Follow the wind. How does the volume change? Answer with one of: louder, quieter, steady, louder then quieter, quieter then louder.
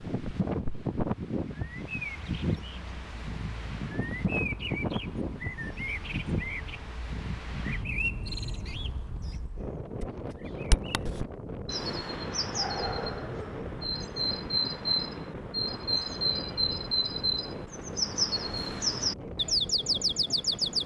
quieter.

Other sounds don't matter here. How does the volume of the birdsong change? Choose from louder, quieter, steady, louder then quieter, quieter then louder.
louder.